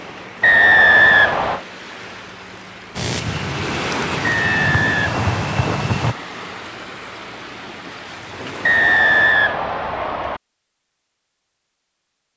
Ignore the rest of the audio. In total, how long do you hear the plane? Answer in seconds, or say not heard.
3 s.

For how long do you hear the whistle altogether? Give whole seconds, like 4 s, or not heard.
5 s.